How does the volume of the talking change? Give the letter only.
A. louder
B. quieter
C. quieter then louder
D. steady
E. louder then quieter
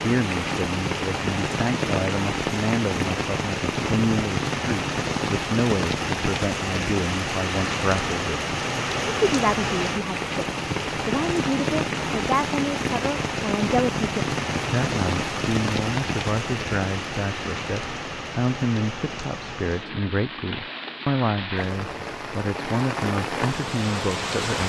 D.